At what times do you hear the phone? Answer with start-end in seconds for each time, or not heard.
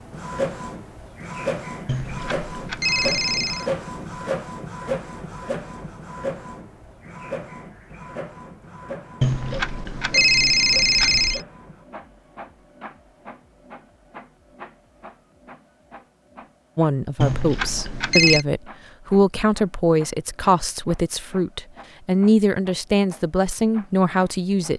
1.9-3.6, 9.2-11.4, 17.2-18.4.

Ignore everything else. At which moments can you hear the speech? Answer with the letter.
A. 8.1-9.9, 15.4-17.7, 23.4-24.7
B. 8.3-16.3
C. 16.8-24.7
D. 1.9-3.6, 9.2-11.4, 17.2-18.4
C.